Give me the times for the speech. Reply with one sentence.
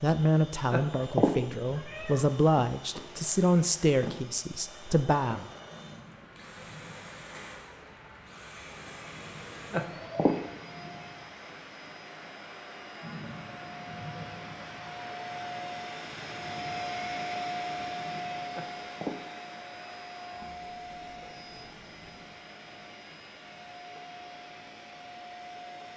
The speech can be heard from 0.0 to 5.5 s.